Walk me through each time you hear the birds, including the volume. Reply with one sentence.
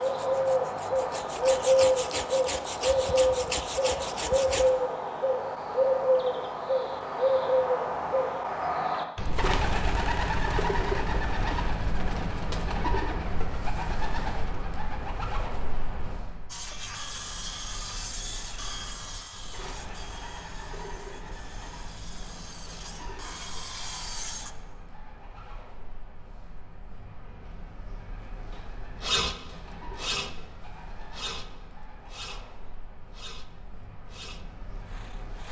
You can hear the birds from 0.0 to 35.4 s, getting quieter.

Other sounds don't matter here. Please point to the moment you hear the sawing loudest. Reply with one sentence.
The volume of the sawing peaks at 29 seconds.